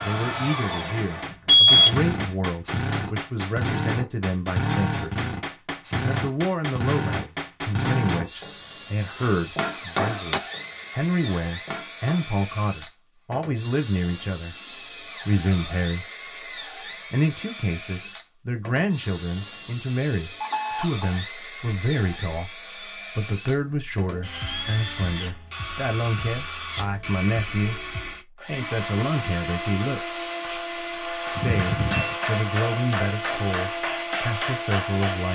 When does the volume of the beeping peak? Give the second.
2 s.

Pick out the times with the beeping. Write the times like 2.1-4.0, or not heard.
1.4-2.4, 20.4-21.1, 31.4-32.1.